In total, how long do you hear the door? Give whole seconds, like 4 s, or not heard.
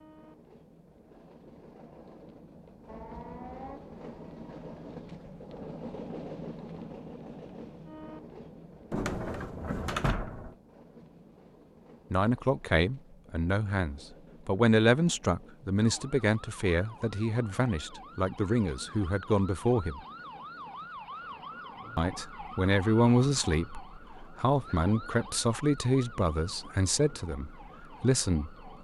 2 s.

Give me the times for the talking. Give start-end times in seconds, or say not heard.
12.1-20.0, 21.9-28.6.